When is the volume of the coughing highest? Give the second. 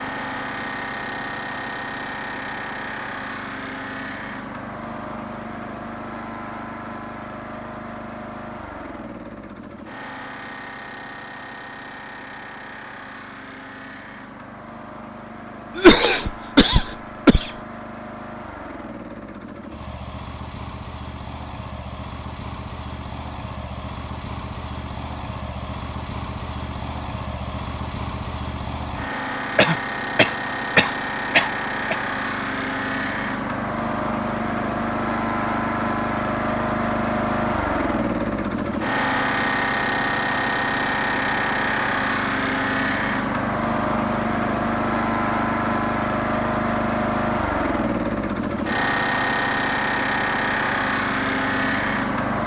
16 s.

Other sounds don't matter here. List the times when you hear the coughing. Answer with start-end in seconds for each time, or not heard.
15.8-17.5, 29.6-31.9.